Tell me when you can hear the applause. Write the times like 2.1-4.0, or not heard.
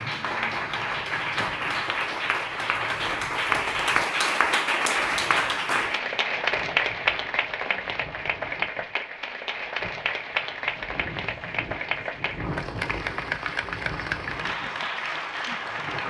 0.0-16.0.